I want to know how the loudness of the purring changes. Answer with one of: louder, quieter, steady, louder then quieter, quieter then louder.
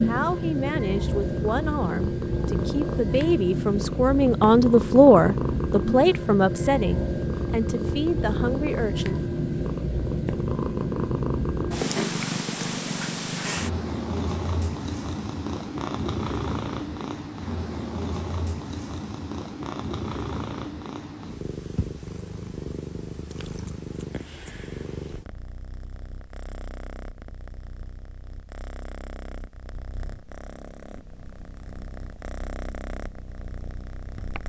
quieter.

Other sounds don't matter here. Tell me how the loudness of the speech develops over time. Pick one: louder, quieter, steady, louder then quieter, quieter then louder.
louder then quieter.